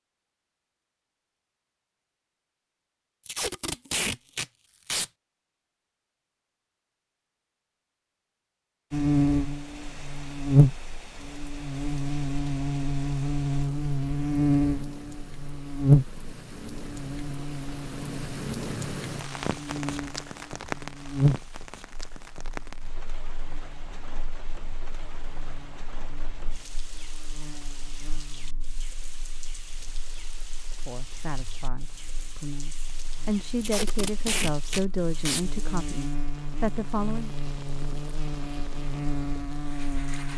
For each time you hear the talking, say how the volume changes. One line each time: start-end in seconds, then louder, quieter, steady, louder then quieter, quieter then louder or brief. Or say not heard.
30.9-37.3 louder.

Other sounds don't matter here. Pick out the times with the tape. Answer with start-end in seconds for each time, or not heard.
3.2-5.1, 33.6-35.5.